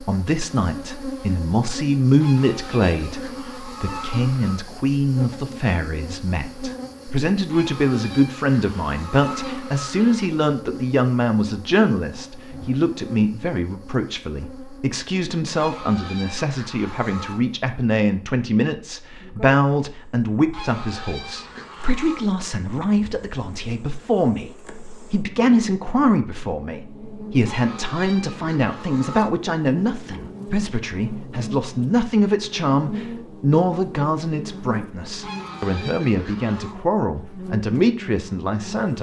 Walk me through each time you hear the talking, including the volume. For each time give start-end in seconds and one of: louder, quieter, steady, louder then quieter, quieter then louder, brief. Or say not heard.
0.0-38.9 steady.